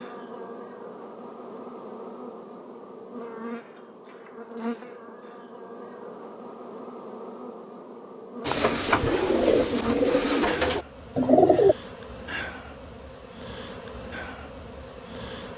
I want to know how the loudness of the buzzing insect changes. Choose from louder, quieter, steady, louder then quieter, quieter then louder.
steady.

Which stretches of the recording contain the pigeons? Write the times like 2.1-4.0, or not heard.
8.4-11.8.